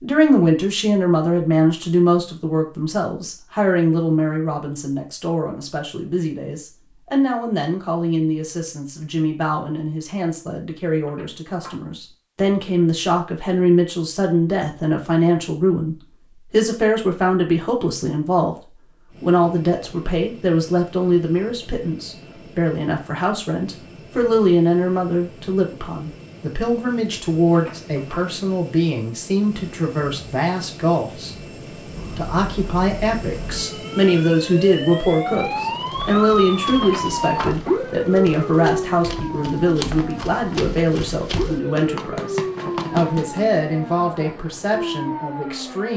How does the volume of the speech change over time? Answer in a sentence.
The loudness of the speech stays about the same.